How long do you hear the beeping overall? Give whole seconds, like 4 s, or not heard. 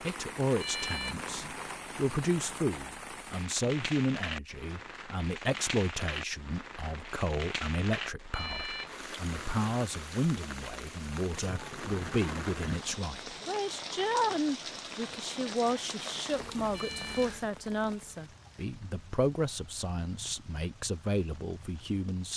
2 s.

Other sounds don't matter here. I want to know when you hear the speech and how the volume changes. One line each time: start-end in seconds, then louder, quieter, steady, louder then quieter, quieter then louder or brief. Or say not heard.
0.0-22.3 steady.